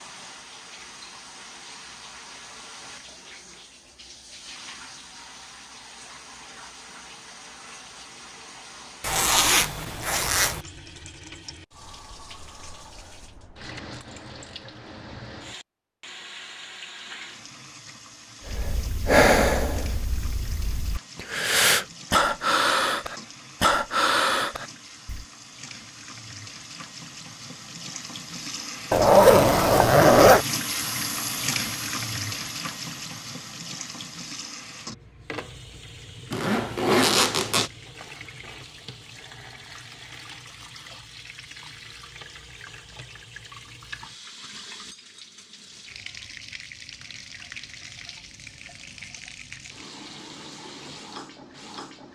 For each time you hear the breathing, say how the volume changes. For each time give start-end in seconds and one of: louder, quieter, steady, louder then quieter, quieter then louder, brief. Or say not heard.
18.4-25.2 quieter then louder.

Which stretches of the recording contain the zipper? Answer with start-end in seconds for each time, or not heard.
9.0-10.6, 28.9-30.4, 36.3-37.7.